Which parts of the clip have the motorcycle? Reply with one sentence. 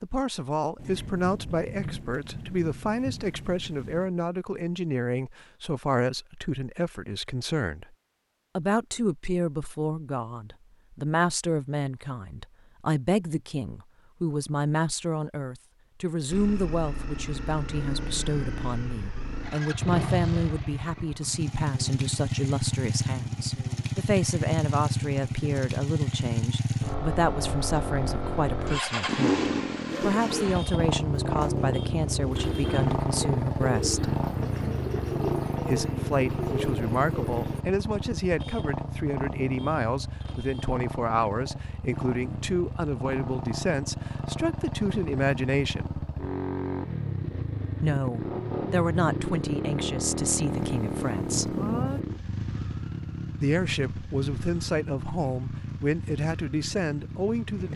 You can hear the motorcycle from 16.3 to 57.7 s.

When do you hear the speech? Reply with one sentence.
The speech can be heard from 0.0 to 7.8 s, from 8.6 to 34.1 s, from 35.6 to 46.0 s, from 47.8 to 51.5 s and from 53.4 to 57.7 s.